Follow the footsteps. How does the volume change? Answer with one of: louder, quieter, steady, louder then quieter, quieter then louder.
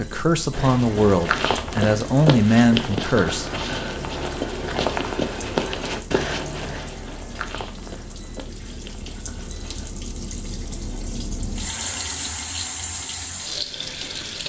quieter.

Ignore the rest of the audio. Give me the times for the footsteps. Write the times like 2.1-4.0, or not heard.
0.5-9.9.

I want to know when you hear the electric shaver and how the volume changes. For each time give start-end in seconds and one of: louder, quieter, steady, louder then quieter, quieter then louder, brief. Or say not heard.
not heard.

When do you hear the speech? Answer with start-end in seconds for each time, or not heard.
0.0-3.5.